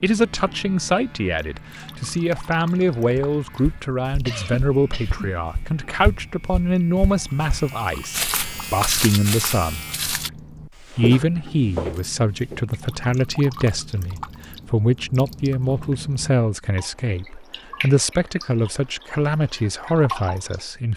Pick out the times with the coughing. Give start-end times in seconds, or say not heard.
4.2-5.3.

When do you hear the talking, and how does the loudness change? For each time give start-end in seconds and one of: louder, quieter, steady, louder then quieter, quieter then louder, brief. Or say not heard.
0.0-9.8 steady
10.9-20.9 steady.